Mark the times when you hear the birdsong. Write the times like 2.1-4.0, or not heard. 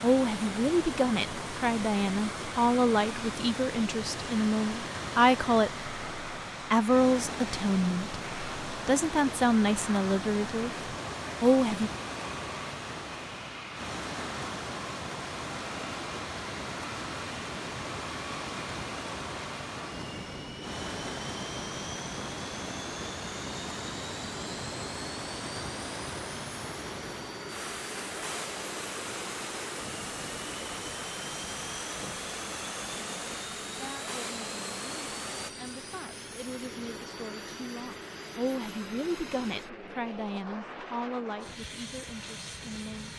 not heard.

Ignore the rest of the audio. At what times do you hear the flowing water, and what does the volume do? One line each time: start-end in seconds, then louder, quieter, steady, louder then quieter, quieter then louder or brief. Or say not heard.
0.0-35.5 steady.